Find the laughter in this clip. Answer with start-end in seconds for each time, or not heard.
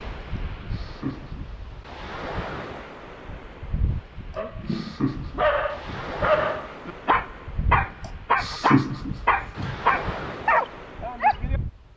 0.3-1.5, 4.3-6.1, 8.0-9.8.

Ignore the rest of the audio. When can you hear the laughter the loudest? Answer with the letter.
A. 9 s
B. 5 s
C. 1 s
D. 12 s
A.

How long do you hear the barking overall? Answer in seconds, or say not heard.
7 s.